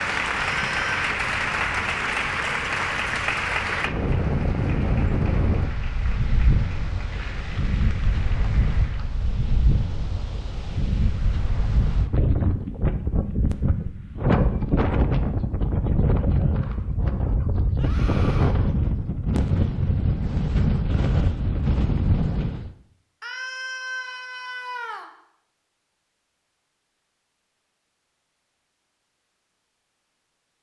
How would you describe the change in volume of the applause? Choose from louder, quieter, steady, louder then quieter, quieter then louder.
quieter.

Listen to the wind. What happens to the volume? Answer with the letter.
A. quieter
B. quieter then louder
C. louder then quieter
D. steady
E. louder
E.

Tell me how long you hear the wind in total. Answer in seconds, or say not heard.
23 s.